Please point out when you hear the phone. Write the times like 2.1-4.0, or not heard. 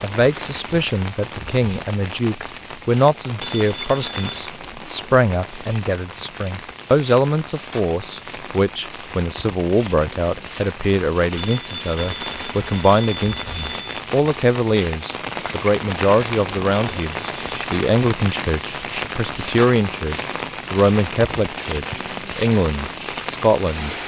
3.4-4.5, 11.3-14.0, 16.9-17.6.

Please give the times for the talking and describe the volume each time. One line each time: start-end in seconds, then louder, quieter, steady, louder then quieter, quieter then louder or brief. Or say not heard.
0.0-23.9 steady.